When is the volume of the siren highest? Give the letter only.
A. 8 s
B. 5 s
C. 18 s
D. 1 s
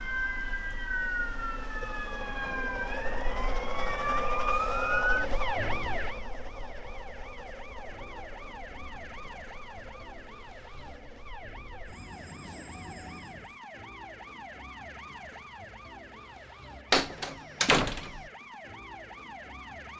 B.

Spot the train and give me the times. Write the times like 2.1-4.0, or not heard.
0.0-13.6.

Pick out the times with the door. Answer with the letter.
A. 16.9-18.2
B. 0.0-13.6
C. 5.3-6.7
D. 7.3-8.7
A.